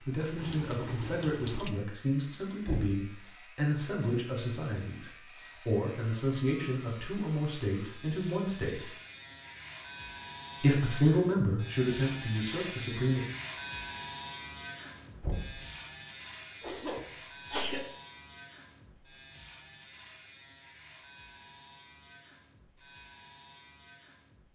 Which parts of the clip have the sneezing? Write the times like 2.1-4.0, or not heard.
16.6-17.9.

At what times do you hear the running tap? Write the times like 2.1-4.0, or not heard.
0.0-1.7.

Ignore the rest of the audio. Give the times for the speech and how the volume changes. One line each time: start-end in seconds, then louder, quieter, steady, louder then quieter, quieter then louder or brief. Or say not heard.
0.0-8.8 steady
10.6-13.2 brief.